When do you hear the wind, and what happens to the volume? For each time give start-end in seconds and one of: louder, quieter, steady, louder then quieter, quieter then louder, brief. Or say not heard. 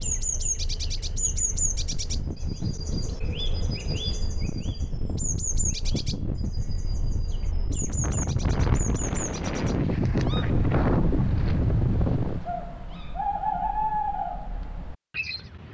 0.0-12.5 louder.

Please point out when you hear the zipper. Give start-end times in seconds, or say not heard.
not heard.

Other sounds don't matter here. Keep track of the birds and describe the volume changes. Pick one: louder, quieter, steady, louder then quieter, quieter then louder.
quieter then louder.